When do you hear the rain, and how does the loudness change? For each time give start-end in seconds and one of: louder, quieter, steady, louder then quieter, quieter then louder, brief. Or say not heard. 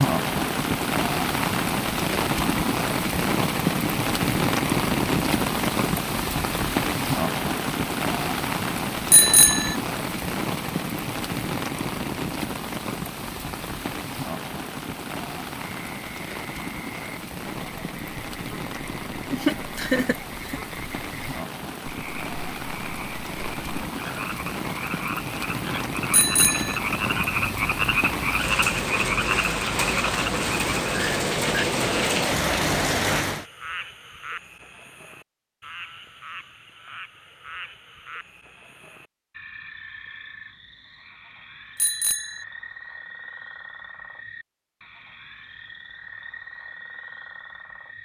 0.0-33.5 quieter then louder.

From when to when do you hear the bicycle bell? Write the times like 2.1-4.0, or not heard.
9.1-9.8, 26.1-26.8, 41.8-42.5.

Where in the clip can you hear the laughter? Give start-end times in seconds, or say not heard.
19.3-20.6.